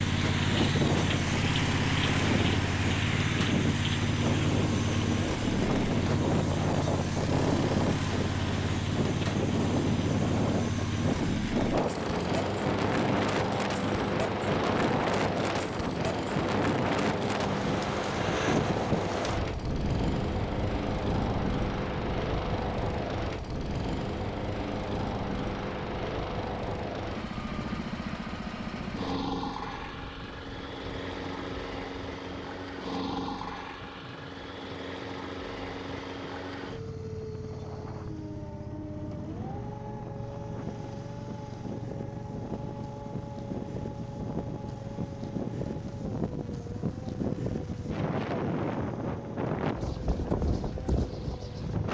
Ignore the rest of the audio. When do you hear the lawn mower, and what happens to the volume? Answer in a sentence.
The lawn mower can be heard from 0.0 to 51.8 s, getting quieter.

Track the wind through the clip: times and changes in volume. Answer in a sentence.
You can hear the wind from 0.0 to 51.8 s, getting quieter then louder.